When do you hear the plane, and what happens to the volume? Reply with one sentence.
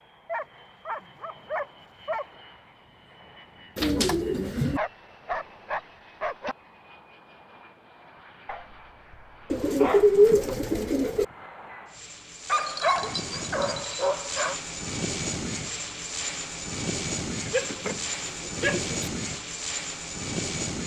You can hear the plane from 0.0 to 20.8 s, getting louder.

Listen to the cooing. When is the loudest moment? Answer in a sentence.
The loudest moment of the cooing is at 10 seconds.